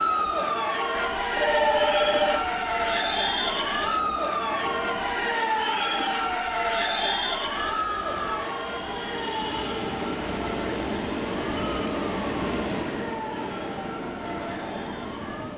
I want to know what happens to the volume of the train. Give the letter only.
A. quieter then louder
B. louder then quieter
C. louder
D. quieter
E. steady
C.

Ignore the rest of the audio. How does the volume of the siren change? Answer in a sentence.
The volume of the siren goes down.